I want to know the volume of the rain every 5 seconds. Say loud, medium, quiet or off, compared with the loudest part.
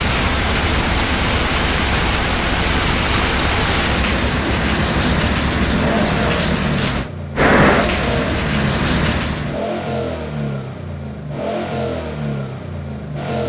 loud, loud, off.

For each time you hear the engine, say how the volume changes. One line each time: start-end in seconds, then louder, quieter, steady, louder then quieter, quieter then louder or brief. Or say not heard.
0.2-13.4 steady.